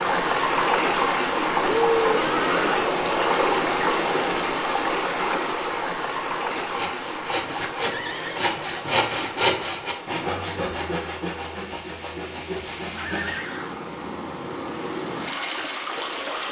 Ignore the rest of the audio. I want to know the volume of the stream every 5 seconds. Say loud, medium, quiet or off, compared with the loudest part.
loud, medium, quiet, medium.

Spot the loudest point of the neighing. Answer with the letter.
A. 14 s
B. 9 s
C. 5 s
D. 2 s
D.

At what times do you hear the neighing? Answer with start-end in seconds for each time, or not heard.
1.6-2.9, 7.8-8.8, 12.9-13.8.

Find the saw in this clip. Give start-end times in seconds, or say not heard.
6.5-13.3.